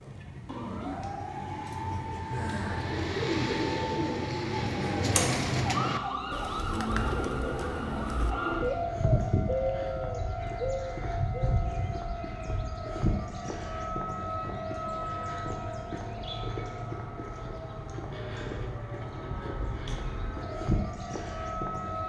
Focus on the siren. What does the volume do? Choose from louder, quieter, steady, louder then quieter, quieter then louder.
steady.